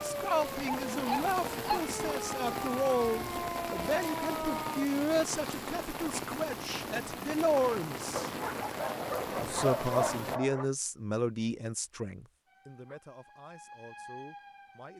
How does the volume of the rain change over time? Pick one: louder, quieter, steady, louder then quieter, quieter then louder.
steady.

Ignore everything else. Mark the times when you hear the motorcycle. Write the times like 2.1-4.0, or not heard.
not heard.